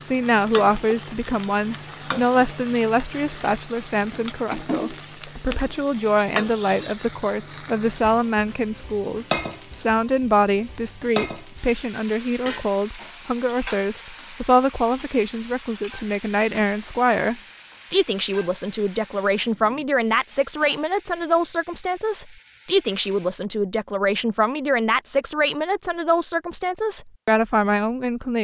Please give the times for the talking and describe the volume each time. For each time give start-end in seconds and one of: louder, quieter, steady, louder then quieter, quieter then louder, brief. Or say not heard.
0.0-28.3 steady.